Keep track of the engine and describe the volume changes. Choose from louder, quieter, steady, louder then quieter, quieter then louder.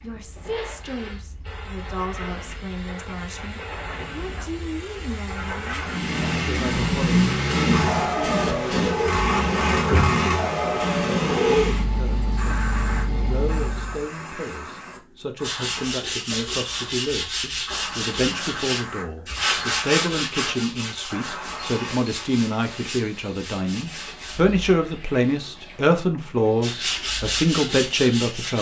quieter.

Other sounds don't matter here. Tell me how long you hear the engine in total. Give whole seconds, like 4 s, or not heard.
8 s.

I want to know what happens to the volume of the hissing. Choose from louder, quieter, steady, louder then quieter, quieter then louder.
louder then quieter.